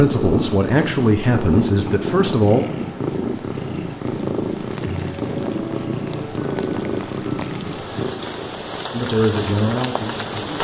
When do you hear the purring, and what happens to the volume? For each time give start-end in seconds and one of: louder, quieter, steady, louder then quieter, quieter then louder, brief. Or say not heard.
0.0-10.6 quieter.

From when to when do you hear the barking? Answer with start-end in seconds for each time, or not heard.
not heard.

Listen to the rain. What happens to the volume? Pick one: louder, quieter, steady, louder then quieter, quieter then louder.
louder.